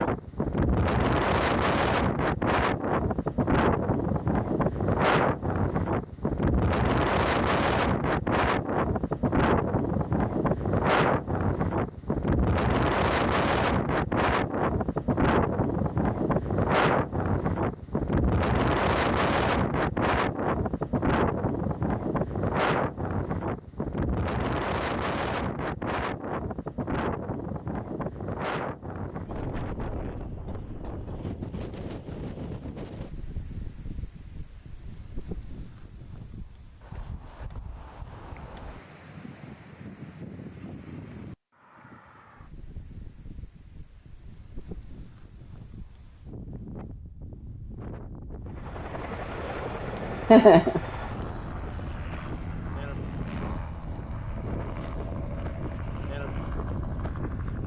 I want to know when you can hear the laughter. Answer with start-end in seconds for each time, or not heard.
50.0-51.2.